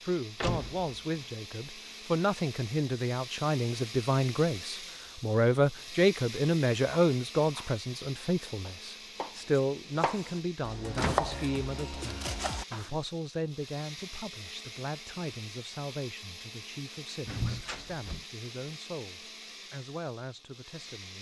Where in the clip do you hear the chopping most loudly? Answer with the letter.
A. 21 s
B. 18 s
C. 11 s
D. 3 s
C.